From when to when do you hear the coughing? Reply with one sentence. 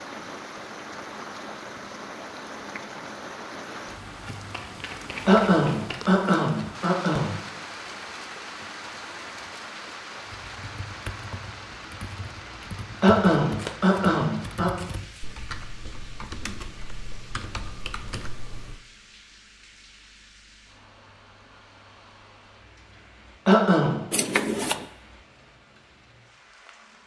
The coughing can be heard from 5.2 to 7.3 s, from 13.0 to 14.7 s and from 23.4 to 24.0 s.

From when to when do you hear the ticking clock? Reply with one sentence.
The ticking clock can't be heard in this clip.